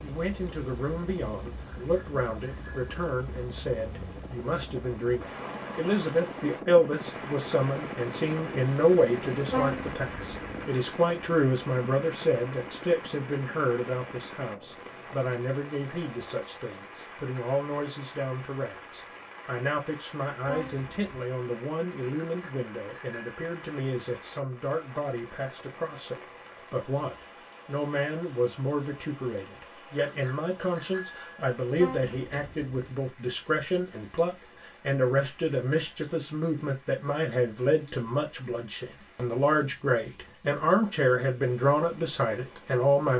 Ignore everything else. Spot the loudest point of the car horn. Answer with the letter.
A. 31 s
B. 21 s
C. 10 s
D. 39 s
C.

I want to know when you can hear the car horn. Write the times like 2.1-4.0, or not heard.
9.5-10.7, 20.4-21.2, 31.8-33.0.